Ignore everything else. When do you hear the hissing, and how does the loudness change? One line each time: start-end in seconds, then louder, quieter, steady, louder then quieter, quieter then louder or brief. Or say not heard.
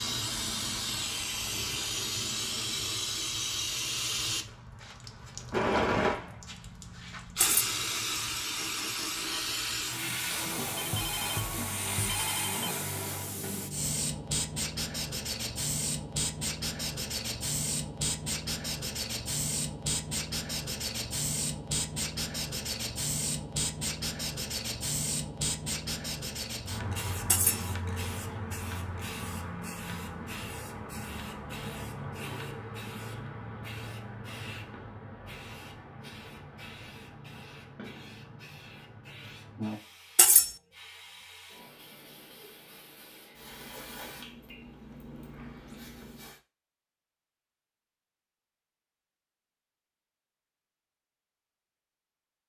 0.0-46.4 quieter.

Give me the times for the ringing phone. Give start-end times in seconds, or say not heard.
10.8-12.8.